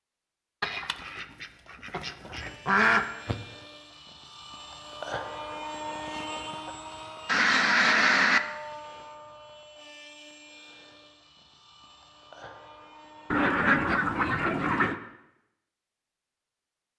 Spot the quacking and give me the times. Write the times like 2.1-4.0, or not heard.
0.6-3.4, 7.2-8.4, 13.3-15.0.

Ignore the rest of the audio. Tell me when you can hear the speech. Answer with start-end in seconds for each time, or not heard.
not heard.